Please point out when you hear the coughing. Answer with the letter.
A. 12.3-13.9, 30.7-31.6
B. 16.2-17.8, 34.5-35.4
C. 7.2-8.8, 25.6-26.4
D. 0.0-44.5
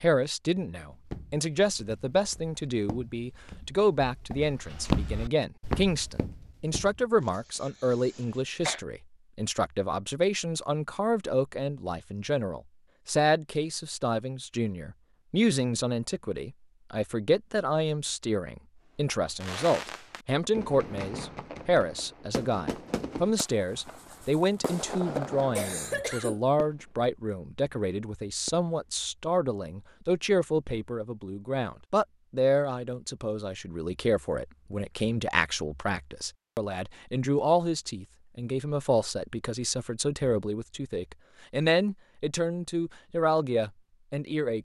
C.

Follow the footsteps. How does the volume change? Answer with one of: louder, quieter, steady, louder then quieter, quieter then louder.
louder then quieter.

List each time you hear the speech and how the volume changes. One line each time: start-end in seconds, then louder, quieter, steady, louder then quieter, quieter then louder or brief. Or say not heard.
0.0-44.5 steady.